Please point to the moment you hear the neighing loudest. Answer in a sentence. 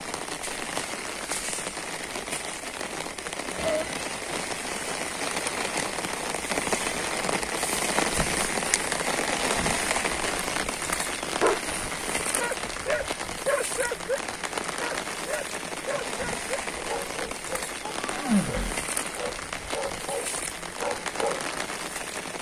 The loudest moment of the neighing is at 18 seconds.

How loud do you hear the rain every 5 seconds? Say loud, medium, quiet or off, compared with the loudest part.
medium, loud, loud, medium, medium.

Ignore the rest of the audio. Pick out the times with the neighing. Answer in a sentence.
The neighing can be heard from 3.5 to 4.0 s and from 17.9 to 18.8 s.